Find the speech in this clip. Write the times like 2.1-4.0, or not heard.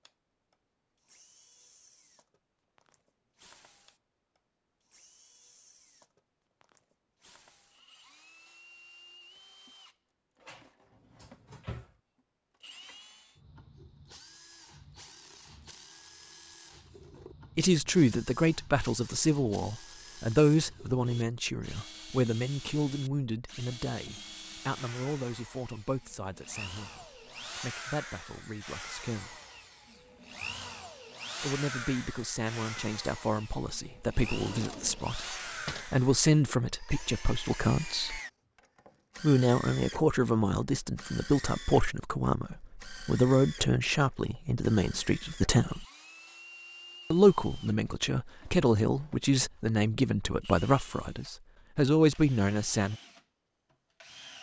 17.6-29.4, 31.4-38.2, 39.2-45.9, 47.1-53.0.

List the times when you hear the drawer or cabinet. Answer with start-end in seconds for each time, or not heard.
10.4-11.9, 34.3-35.9.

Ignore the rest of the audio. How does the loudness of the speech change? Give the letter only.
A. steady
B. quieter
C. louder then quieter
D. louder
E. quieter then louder
E.